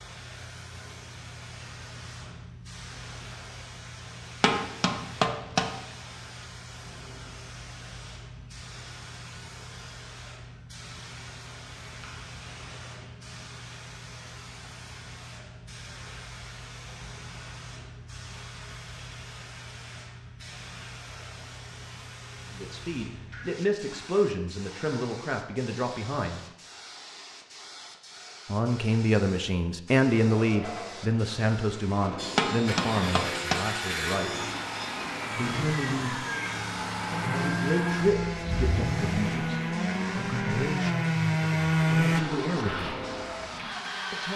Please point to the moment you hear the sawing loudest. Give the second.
42 s.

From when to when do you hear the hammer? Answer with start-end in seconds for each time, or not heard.
4.4-5.8, 32.4-33.7.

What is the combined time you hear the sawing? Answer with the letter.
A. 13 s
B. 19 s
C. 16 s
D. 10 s
D.